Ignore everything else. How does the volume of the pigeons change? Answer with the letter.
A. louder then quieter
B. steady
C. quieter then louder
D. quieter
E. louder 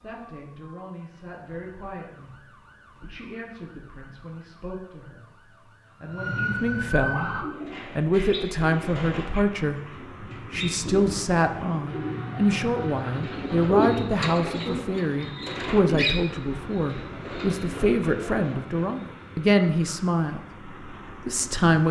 A.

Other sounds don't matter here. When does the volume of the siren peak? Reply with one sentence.
The volume of the siren peaks at 7 seconds.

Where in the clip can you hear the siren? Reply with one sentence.
You can hear the siren from 0.0 to 7.5 s.